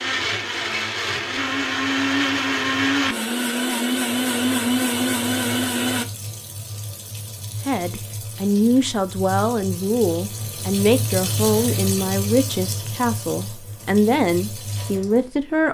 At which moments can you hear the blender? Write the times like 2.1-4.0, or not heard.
0.0-6.0.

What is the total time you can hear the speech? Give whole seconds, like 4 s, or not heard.
8 s.